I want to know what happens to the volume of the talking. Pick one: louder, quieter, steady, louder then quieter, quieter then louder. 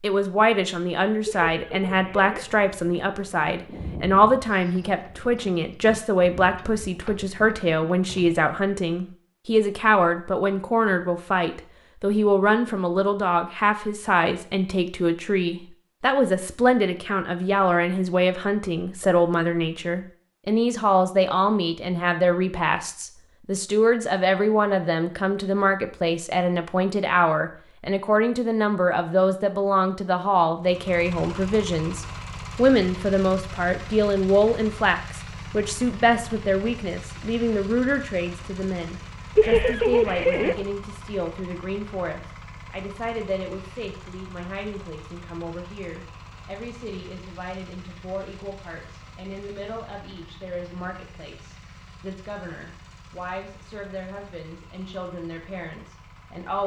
quieter.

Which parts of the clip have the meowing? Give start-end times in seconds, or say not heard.
1.2-2.5, 39.4-40.6.